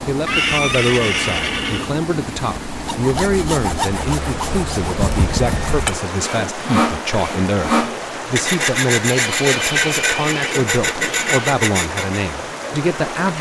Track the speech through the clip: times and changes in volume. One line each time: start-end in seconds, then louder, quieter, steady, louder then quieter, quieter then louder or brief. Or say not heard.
0.0-13.3 steady.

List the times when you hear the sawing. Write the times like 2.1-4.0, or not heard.
2.8-12.2.